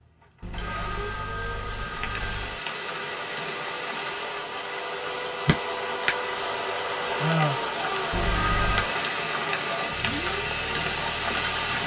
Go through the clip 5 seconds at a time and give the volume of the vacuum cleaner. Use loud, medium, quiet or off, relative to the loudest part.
medium, loud, medium.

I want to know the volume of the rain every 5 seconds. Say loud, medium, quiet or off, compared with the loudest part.
medium, loud, loud.